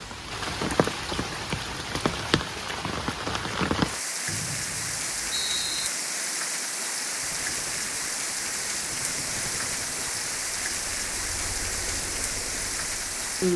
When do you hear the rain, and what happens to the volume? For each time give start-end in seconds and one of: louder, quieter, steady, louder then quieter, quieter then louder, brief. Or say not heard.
0.0-13.5 steady.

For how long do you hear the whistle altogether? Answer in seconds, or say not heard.
2 s.